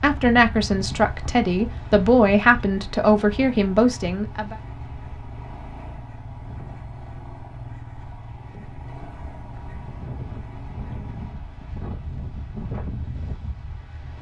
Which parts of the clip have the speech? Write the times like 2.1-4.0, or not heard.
0.0-4.5.